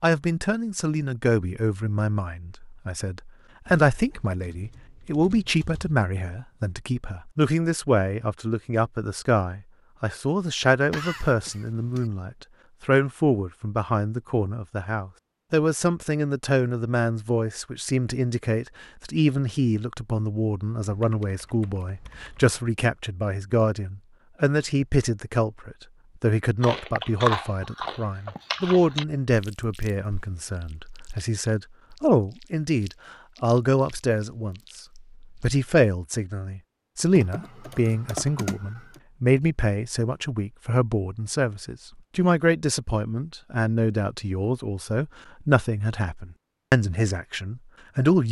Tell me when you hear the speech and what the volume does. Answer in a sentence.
You can hear the speech from 0.0 to 48.2 s, at a steady volume.